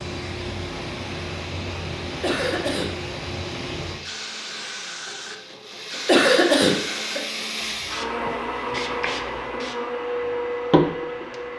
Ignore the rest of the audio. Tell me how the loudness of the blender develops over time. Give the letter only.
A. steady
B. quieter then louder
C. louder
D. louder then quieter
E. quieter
C.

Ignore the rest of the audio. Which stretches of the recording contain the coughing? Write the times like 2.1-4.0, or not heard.
2.2-2.9, 6.0-7.2.